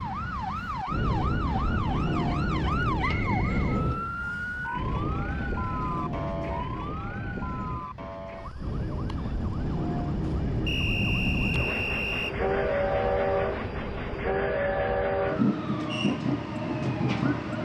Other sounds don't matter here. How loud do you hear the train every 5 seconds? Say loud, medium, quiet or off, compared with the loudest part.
loud, medium, loud, loud.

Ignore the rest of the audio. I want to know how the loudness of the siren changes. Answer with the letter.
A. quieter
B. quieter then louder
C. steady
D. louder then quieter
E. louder
B.